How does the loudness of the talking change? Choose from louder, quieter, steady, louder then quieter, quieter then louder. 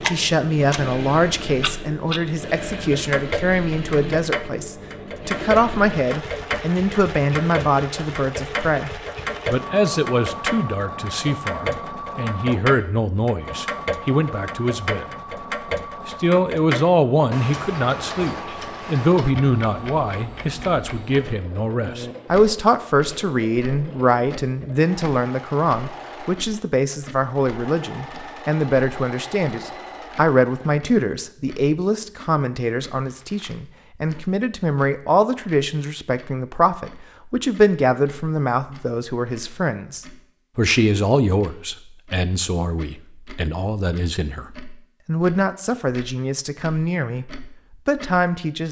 steady.